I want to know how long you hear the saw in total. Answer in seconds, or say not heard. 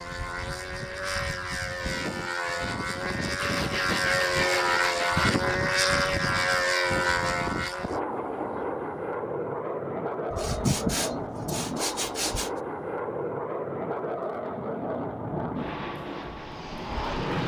4 s.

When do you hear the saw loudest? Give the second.
11 s.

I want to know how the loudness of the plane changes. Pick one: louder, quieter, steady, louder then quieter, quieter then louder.
louder then quieter.